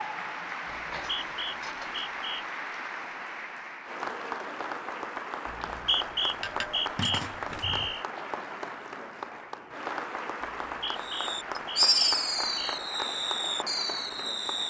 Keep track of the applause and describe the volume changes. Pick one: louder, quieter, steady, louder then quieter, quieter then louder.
steady.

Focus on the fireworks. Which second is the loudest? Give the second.
12 s.